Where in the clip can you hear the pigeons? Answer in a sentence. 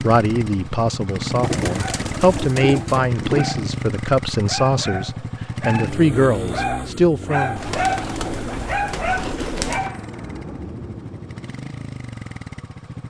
The pigeons can be heard from 1.4 to 3.5 s and from 7.5 to 9.9 s.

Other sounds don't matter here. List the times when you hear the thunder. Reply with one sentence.
You can hear the thunder from 9.7 to 11.6 s.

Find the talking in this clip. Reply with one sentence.
You can hear the talking from 0.0 to 7.7 s.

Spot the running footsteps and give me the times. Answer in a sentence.
The running footsteps can't be heard in this clip.